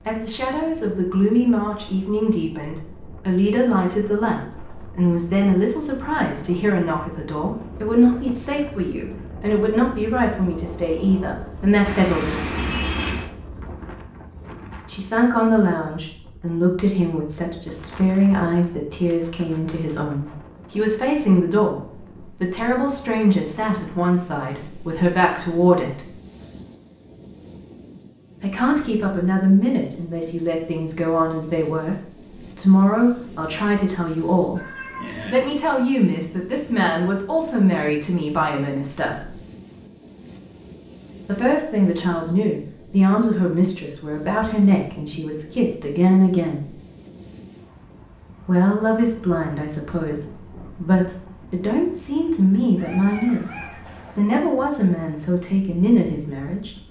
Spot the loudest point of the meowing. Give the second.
13 s.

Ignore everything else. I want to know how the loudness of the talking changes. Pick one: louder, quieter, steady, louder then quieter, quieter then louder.
steady.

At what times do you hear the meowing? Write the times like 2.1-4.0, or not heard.
11.8-13.3, 34.5-35.4, 52.8-54.2.